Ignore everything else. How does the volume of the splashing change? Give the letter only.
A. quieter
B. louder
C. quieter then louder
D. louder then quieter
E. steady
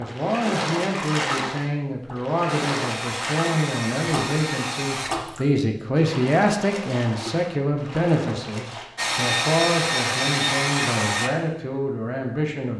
A.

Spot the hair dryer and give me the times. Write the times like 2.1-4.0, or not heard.
2.5-5.1, 8.9-11.3.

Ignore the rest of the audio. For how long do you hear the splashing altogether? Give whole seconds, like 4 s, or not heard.
9 s.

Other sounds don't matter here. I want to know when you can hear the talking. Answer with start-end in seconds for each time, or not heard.
0.0-12.7.